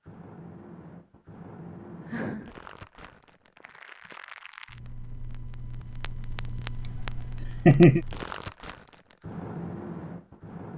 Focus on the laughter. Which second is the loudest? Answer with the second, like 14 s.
8 s.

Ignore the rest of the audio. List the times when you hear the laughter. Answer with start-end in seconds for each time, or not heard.
1.9-2.5, 6.8-8.0.